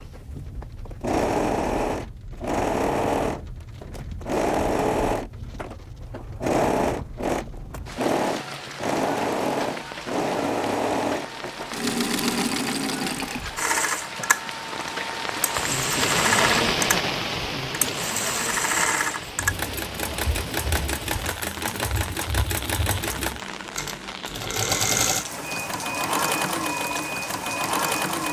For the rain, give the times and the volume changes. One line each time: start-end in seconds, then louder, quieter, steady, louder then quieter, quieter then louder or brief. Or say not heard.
0.0-28.2 louder then quieter.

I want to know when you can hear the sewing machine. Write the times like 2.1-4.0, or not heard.
0.0-28.2.